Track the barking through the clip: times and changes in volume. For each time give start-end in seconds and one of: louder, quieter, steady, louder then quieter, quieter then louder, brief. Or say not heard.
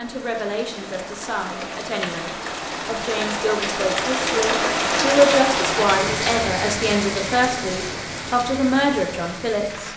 not heard.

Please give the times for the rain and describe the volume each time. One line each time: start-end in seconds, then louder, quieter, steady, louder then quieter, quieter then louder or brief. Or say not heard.
0.0-9.9 louder then quieter.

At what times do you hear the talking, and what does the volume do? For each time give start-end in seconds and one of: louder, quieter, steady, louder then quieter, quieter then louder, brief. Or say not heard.
0.0-9.9 louder.